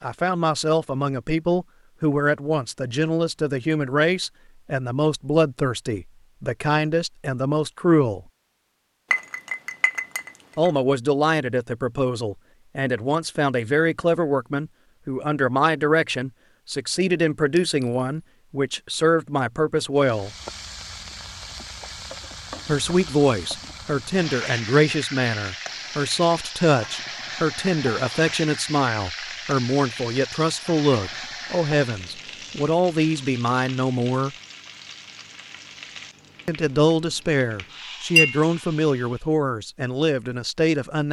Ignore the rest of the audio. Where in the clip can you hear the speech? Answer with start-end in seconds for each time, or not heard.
0.0-8.2, 10.6-20.3, 22.6-34.3, 36.5-41.0.